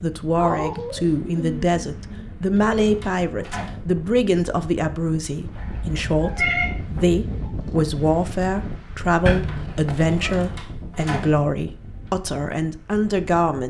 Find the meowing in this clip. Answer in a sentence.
You can hear the meowing from 0.3 to 2.2 s, from 5.5 to 7.5 s and from 9.2 to 10.4 s.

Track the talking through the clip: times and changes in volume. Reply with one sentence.
You can hear the talking from 0.0 to 13.6 s, at a steady volume.